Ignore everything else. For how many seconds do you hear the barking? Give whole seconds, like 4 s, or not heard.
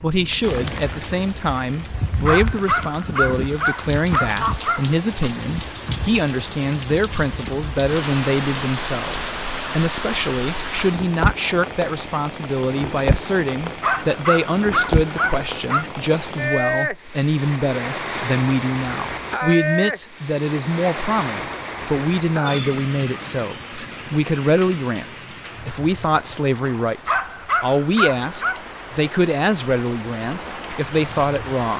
6 s.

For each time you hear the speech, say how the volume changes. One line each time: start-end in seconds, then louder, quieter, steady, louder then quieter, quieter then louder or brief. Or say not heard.
0.0-31.7 steady.